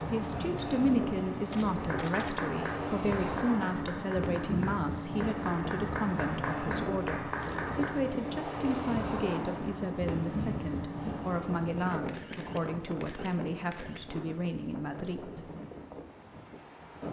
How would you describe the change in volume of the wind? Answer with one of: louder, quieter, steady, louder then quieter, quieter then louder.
quieter.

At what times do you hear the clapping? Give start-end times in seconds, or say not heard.
1.8-8.0.